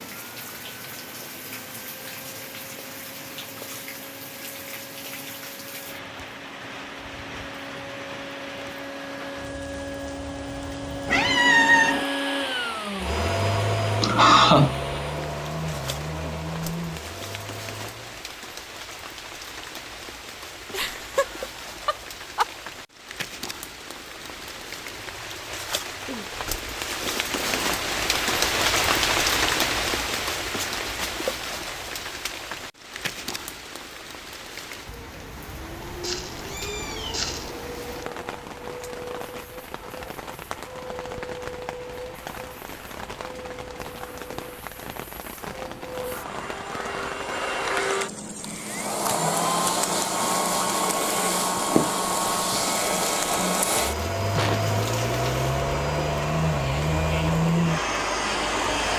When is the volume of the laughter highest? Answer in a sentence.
The volume of the laughter peaks at 14 seconds.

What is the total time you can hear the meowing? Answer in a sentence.
The meowing can be heard for 3 seconds in total.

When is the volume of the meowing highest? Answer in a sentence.
The volume of the meowing peaks at 12 seconds.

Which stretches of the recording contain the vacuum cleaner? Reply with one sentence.
You can hear the vacuum cleaner from 0.0 to 18.2 s and from 35.4 to 58.9 s.